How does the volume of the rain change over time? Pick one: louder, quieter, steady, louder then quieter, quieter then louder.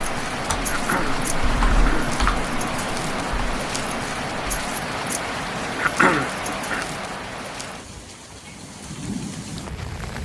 quieter.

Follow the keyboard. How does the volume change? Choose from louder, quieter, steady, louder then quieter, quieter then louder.
louder then quieter.